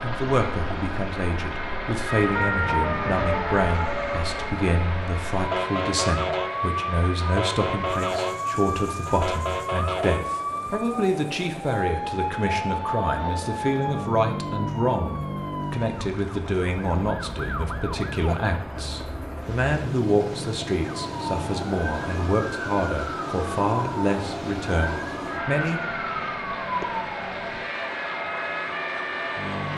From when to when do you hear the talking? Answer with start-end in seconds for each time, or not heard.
0.0-25.8.